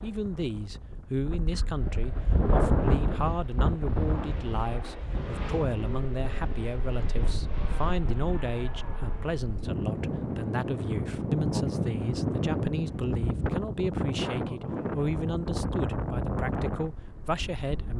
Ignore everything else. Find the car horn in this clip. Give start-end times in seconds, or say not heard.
not heard.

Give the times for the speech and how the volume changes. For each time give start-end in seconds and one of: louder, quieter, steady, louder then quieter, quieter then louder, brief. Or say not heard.
0.0-17.9 steady.